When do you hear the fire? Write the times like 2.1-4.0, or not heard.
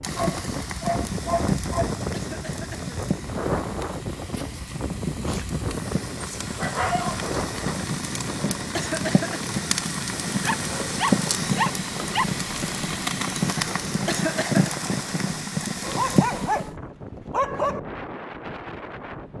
0.0-16.6.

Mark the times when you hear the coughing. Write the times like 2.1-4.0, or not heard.
2.1-3.0, 8.8-9.4, 14.1-14.7.